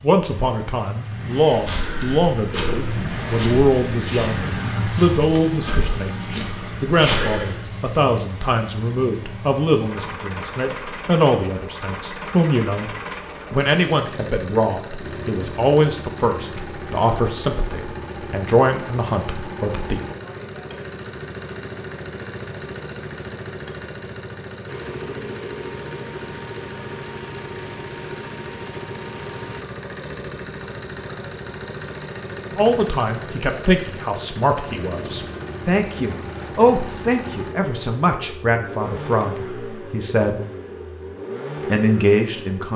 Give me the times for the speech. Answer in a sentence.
You can hear the speech from 0.0 to 12.9 s, from 13.5 to 20.0 s, from 32.5 to 40.4 s and from 41.7 to 42.7 s.